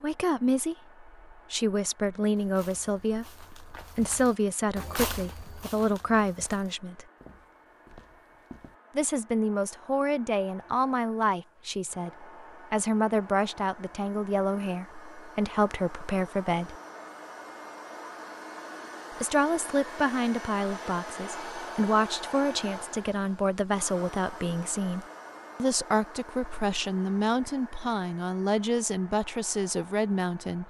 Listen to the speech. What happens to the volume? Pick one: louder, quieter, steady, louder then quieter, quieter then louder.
steady.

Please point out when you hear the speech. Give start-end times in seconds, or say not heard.
0.0-7.0, 8.9-16.8, 19.1-30.6.